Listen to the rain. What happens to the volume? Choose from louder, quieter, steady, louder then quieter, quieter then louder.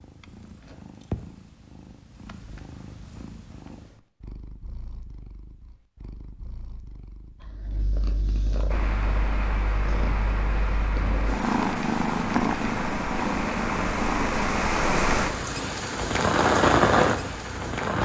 louder.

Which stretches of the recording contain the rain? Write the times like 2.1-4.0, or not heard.
8.7-17.9.